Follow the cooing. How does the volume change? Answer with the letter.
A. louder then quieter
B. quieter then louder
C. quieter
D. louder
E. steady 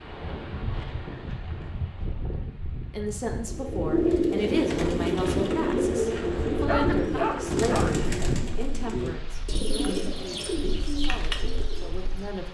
C.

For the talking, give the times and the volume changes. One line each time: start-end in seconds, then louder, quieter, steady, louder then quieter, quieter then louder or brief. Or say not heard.
2.9-12.4 quieter.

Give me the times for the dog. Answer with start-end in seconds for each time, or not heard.
6.7-8.2.